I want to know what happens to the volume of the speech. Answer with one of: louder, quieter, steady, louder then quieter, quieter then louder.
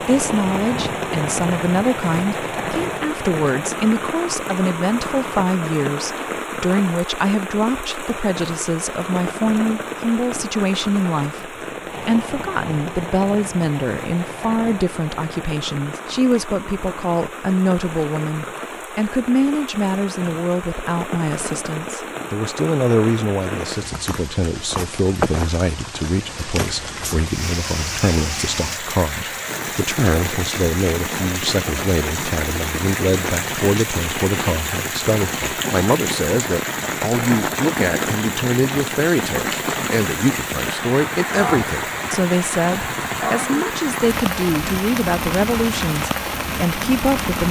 steady.